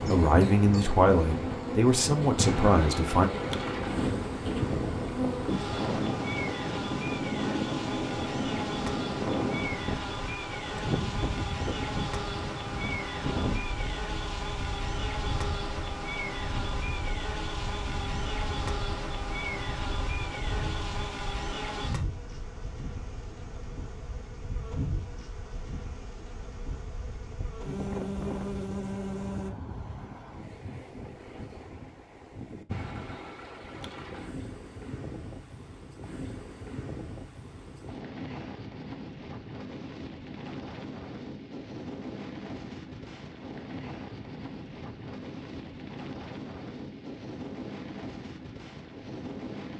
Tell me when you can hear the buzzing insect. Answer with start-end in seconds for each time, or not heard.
0.0-29.5.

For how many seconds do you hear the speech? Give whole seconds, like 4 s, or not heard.
3 s.